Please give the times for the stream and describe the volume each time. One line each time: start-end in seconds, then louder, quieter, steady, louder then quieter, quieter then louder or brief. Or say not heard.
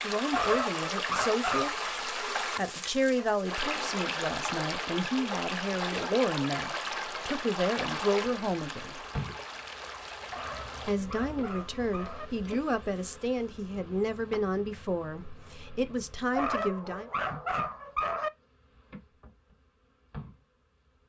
0.0-11.0 quieter.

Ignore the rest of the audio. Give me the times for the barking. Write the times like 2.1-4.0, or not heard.
0.3-1.8, 10.3-12.2, 16.3-18.3.